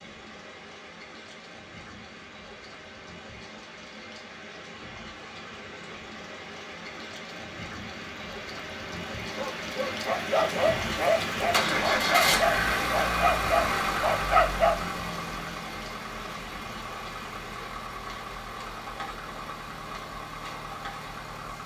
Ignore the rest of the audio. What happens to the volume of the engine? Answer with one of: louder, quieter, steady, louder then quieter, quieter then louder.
quieter.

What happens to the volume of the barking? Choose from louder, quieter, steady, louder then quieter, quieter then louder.
steady.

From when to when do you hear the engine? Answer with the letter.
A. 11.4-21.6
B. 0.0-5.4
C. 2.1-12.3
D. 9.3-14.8
A.